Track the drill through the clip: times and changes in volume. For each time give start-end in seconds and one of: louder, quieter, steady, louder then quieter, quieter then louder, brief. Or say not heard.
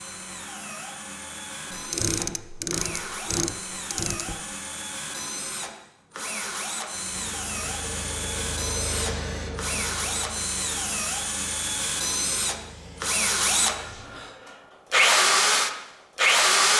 0.0-16.7 louder.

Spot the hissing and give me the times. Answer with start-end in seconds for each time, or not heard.
6.9-14.2.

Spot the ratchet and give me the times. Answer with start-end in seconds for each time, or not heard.
1.7-4.4.